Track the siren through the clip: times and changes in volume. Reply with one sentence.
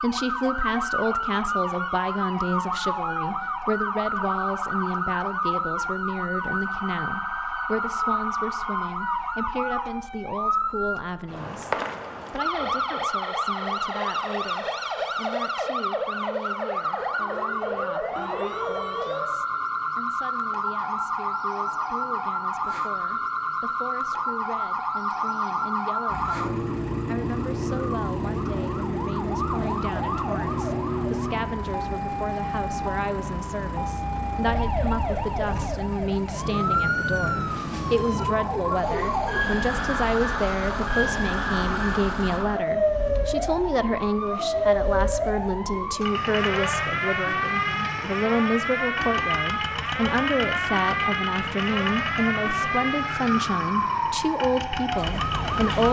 You can hear the siren from 0.0 to 55.8 s, at a steady volume.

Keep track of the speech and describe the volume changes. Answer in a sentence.
The loudness of the speech goes down, then up.